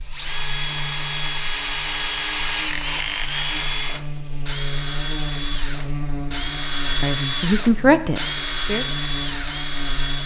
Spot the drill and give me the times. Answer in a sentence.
You can hear the drill from 0.0 to 10.2 s.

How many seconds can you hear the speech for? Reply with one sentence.
The speech can be heard for 2 seconds in total.